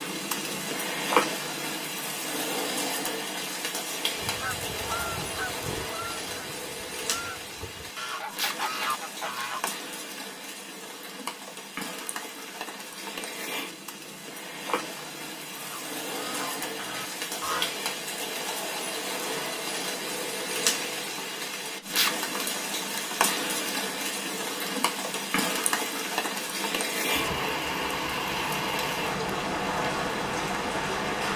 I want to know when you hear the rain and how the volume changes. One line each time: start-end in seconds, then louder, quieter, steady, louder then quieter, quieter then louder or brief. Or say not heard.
0.0-31.3 quieter then louder.